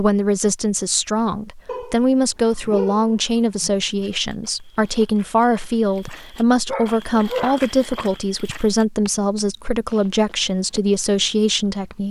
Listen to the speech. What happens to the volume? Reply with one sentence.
The loudness of the speech stays about the same.